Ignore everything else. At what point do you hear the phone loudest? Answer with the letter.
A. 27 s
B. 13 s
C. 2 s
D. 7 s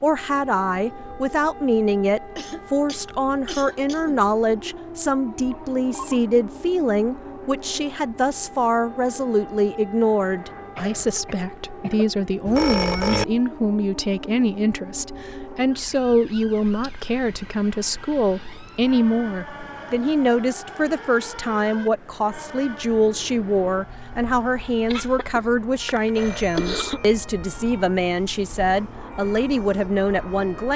B.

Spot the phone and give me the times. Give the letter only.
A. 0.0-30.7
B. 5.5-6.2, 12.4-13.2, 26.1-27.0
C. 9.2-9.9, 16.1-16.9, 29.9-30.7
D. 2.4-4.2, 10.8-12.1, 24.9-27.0
B.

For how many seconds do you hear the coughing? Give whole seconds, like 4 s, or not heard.
5 s.